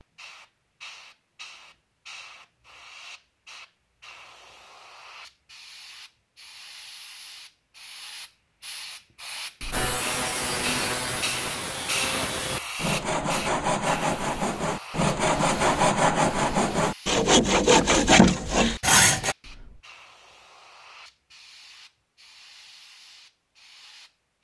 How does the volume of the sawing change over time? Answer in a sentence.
The volume of the sawing goes up.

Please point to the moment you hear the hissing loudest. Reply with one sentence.
The volume of the hissing peaks at 12 seconds.